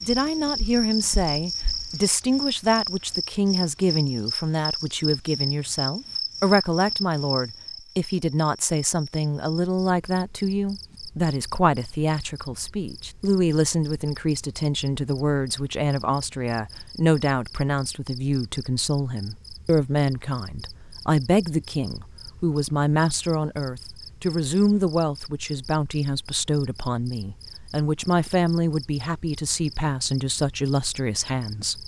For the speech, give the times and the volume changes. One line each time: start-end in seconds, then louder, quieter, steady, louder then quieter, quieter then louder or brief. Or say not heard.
0.0-31.8 steady.